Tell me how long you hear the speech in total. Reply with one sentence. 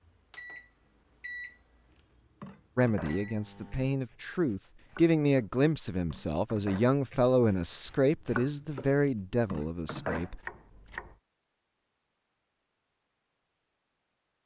You can hear the speech for 8 seconds altogether.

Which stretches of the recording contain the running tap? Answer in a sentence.
The running tap can't be heard in this clip.